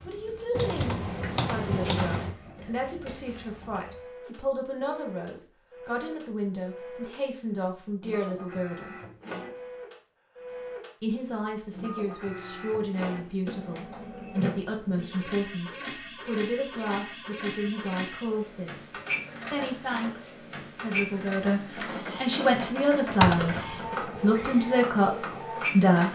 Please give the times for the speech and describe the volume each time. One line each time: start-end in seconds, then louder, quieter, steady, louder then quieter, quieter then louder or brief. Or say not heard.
0.0-8.9 steady
11.0-26.1 louder.